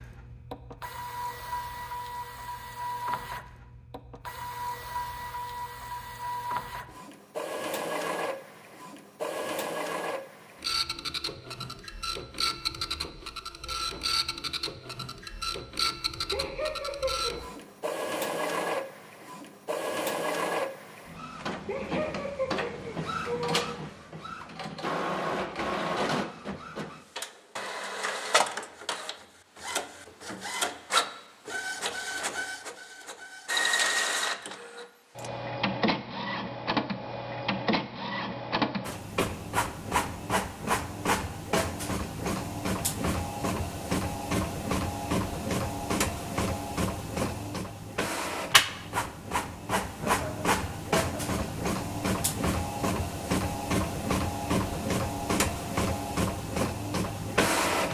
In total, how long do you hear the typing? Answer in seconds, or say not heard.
not heard.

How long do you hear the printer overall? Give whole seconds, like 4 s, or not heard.
58 s.